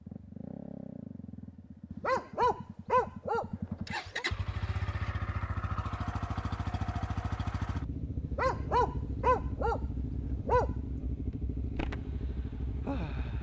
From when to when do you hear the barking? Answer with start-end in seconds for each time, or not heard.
1.9-4.2, 8.2-10.8.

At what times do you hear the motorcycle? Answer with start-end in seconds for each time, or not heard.
0.0-13.3.